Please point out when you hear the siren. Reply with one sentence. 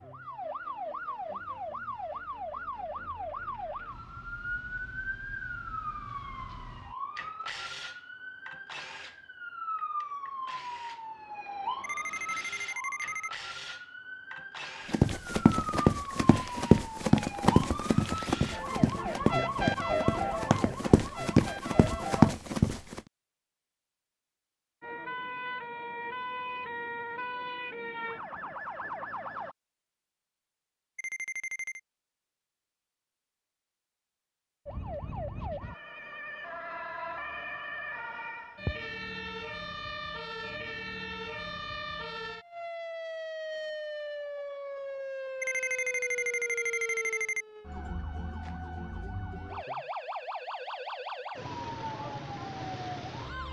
The siren can be heard from 0.0 to 22.4 s, from 24.8 to 29.6 s and from 34.6 to 53.4 s.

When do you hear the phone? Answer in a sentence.
You can hear the phone from 11.8 to 13.3 s, from 30.9 to 31.8 s and from 45.4 to 47.5 s.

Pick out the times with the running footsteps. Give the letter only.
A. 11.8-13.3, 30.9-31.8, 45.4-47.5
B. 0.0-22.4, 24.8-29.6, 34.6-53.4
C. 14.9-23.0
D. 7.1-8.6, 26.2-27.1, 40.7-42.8
C.